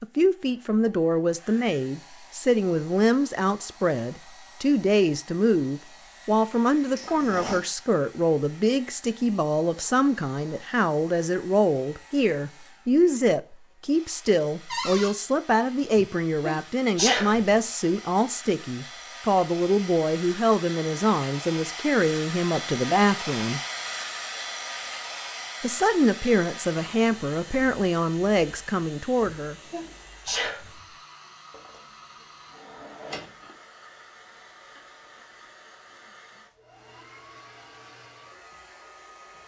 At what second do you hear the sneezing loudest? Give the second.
17 s.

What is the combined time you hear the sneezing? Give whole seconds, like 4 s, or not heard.
3 s.